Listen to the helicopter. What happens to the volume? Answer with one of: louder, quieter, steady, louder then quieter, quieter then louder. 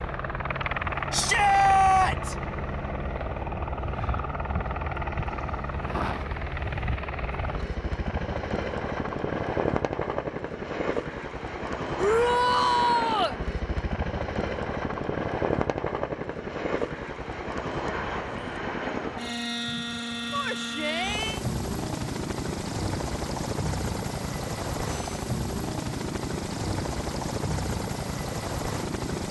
steady.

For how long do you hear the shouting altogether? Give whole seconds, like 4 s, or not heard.
4 s.